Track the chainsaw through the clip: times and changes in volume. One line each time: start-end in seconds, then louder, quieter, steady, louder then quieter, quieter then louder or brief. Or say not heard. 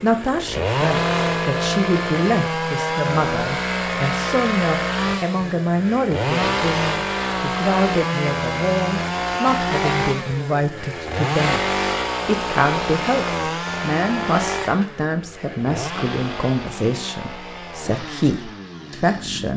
0.0-19.5 quieter.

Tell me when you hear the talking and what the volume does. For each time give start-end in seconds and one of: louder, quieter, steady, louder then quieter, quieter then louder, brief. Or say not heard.
0.0-19.5 steady.